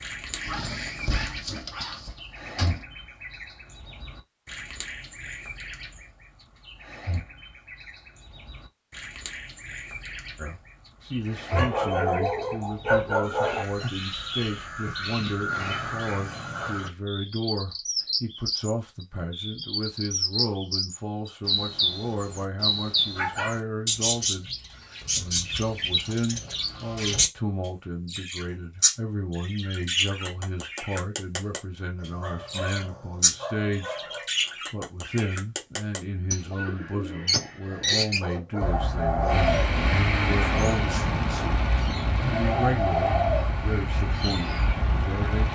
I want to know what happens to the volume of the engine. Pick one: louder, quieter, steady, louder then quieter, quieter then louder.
quieter.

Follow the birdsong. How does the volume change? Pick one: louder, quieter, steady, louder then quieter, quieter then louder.
louder.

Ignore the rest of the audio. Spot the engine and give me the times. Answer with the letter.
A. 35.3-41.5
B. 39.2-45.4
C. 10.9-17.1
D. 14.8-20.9
B.